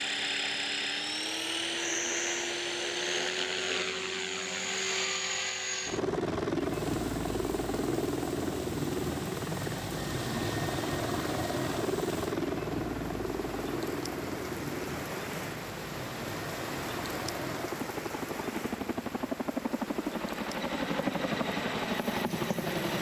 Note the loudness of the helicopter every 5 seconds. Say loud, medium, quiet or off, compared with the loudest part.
loud, loud, loud, medium, loud.